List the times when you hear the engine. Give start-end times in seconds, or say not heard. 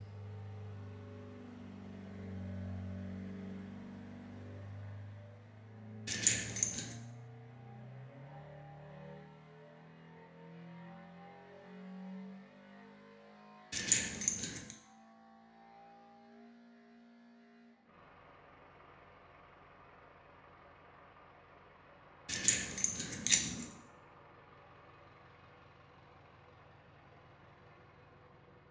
0.0-28.6.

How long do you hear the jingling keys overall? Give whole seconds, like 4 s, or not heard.
3 s.